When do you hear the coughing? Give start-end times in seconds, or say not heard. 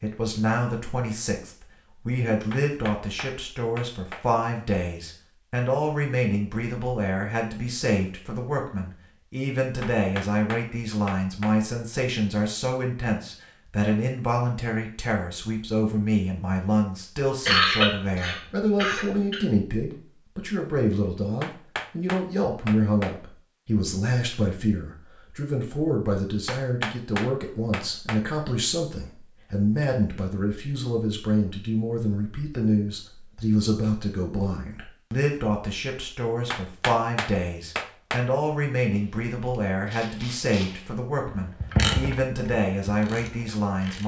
17.4-19.4.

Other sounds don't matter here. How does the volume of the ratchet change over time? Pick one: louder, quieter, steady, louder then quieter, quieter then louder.
louder then quieter.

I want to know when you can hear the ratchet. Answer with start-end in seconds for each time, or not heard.
38.9-44.0.